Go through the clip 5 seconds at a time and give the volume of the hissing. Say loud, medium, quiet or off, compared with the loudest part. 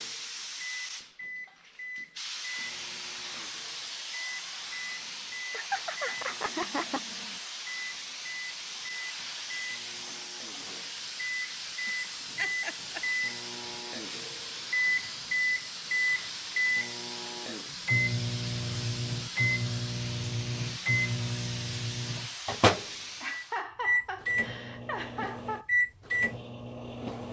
loud, loud, loud, loud, loud, off.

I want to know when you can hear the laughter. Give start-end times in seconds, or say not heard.
5.5-7.3, 11.8-13.1, 23.2-25.6.